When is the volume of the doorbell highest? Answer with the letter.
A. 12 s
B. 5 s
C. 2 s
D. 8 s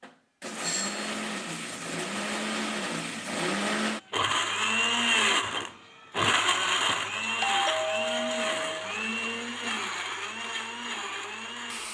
D.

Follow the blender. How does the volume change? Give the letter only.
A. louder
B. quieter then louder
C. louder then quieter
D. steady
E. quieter
C.